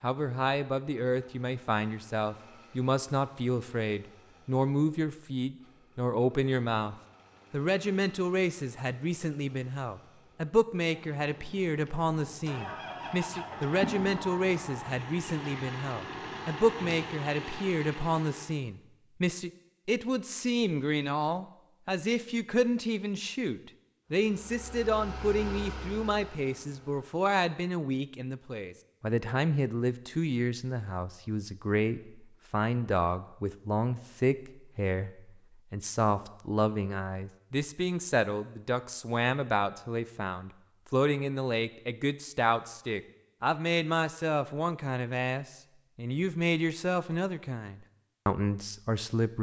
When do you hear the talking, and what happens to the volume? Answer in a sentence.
The talking can be heard from 0.0 to 49.3 s, at a steady volume.